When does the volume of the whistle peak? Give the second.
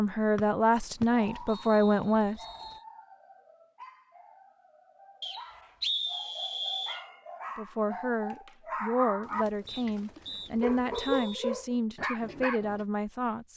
6 s.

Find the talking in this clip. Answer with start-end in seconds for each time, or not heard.
0.0-2.4, 7.5-13.5.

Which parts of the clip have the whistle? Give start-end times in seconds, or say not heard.
0.3-2.8, 5.2-7.0, 9.7-11.5.